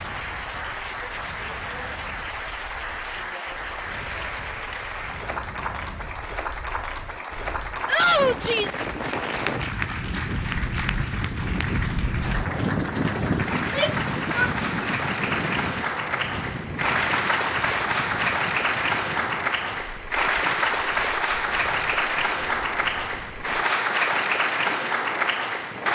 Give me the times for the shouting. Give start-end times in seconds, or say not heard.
7.8-8.8, 13.6-14.9.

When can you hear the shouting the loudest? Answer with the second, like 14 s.
8 s.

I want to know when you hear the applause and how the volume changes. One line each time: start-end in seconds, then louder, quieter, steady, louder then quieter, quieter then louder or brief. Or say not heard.
0.0-25.9 louder.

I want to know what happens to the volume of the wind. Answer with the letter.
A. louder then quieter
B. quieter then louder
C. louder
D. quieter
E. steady
A.